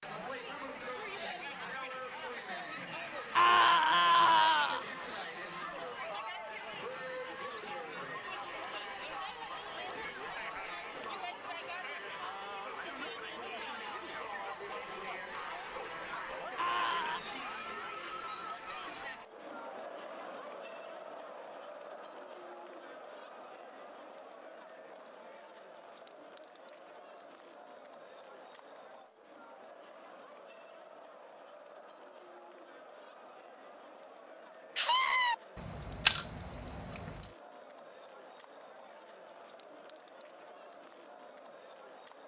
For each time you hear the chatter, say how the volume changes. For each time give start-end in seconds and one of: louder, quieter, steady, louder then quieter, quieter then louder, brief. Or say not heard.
0.0-42.2 quieter.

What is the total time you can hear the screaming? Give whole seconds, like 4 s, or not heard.
3 s.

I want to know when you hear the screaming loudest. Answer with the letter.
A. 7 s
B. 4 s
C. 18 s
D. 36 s
B.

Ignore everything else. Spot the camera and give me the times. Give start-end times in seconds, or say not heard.
35.5-37.3.